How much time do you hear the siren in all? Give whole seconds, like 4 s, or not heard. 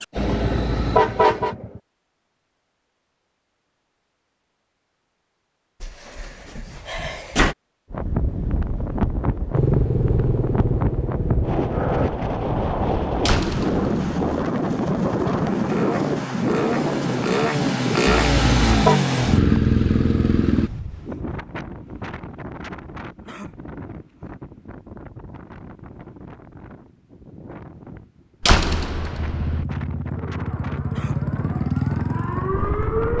3 s.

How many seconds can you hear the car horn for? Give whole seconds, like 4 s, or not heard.
2 s.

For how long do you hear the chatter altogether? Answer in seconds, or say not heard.
not heard.